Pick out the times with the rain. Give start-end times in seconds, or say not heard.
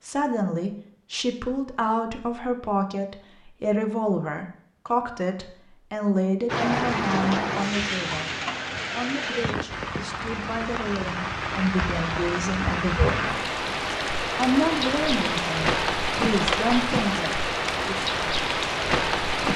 6.5-19.5.